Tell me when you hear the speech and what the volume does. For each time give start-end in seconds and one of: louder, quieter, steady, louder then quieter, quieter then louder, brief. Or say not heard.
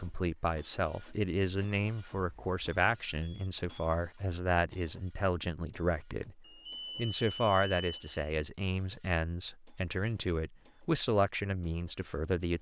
0.0-12.5 steady.